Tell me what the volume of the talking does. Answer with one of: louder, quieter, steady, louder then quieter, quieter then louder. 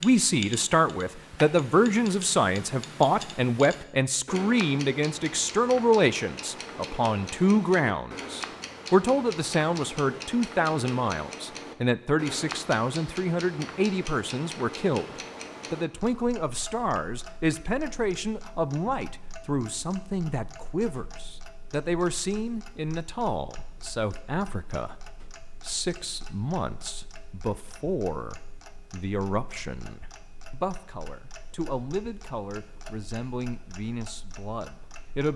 quieter.